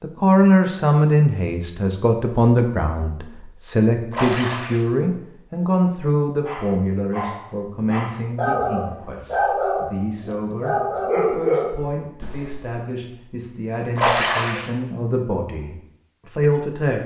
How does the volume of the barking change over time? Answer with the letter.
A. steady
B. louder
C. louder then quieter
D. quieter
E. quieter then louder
B.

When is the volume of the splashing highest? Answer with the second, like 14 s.
14 s.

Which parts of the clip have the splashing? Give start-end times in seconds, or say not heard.
4.1-4.8, 13.9-14.7.